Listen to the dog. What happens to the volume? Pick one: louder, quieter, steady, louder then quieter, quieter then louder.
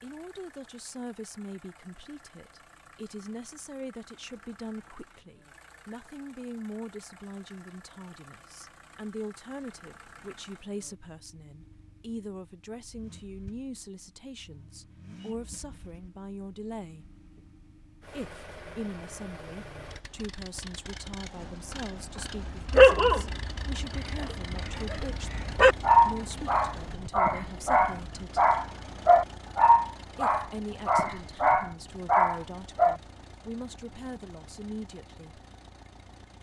louder.